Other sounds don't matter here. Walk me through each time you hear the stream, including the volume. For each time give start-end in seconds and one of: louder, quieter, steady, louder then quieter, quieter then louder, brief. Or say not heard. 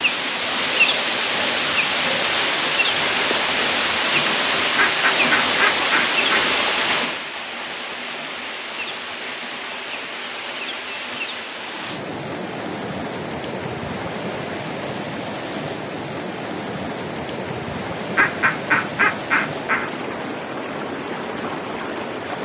0.0-22.4 quieter.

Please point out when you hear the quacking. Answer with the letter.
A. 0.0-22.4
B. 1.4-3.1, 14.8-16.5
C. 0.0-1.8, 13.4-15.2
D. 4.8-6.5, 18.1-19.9
D.